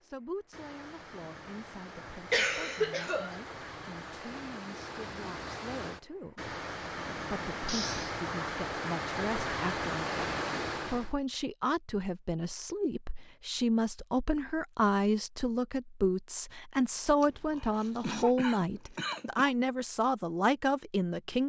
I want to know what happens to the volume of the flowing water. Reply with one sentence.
The volume of the flowing water goes up.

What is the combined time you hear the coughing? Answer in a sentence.
You can hear the coughing for 4 seconds altogether.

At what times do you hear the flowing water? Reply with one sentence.
You can hear the flowing water from 0.0 to 11.2 s.